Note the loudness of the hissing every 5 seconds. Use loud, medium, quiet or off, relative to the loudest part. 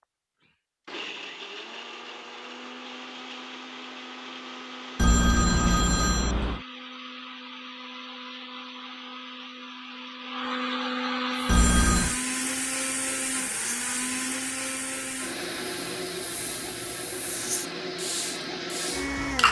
off, off, quiet, loud.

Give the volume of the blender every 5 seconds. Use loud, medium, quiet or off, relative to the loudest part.
medium, medium, loud, loud.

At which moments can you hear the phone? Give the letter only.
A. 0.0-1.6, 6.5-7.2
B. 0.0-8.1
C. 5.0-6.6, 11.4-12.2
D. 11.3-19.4
C.